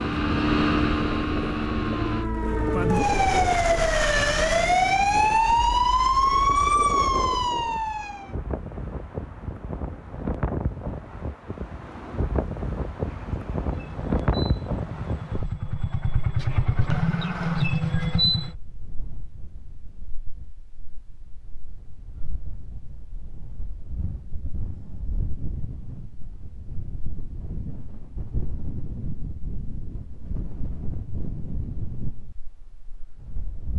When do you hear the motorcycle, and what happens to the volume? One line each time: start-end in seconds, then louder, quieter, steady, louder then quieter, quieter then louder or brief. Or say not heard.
0.0-2.3 brief
13.0-18.6 louder.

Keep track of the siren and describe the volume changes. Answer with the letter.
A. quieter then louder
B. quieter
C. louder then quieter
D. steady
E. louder
E.